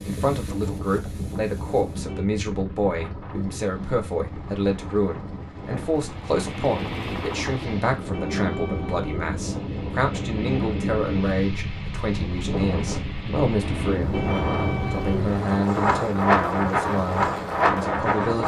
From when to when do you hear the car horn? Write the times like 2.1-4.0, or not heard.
1.6-2.2, 7.8-9.4, 13.6-15.7.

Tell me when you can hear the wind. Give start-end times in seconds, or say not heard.
0.0-18.4.